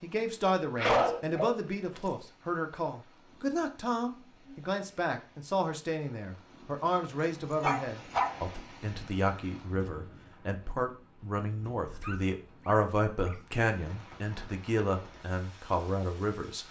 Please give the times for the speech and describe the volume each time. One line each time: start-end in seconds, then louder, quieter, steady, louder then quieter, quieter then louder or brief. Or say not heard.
0.0-16.6 steady.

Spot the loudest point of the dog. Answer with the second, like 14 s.
1 s.